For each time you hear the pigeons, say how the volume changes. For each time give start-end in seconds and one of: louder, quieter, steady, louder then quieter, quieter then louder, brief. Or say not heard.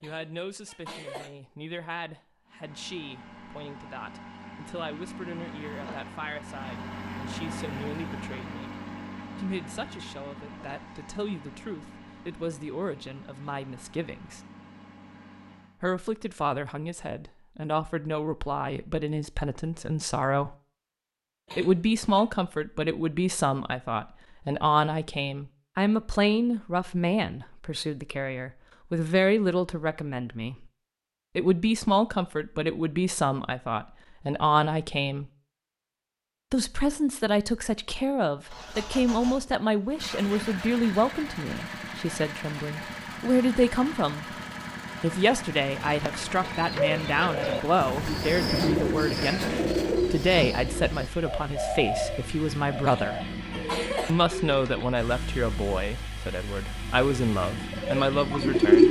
45.8-54.9 quieter
57.5-58.8 brief.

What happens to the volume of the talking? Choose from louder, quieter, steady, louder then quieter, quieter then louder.
louder.